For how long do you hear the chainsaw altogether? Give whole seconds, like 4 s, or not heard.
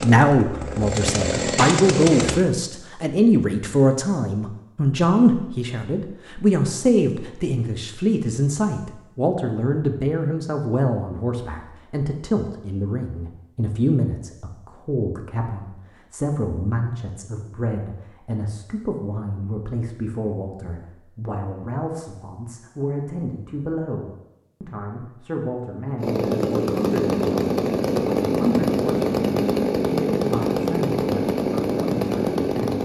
9 s.